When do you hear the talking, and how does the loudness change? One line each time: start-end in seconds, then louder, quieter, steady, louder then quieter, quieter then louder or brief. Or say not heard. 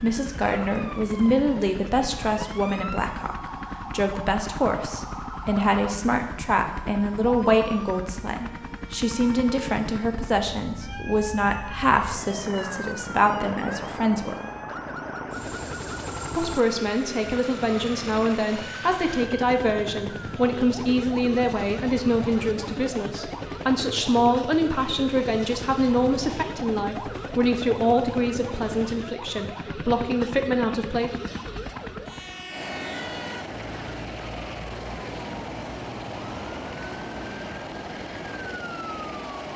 0.0-14.3 steady
16.3-31.1 steady.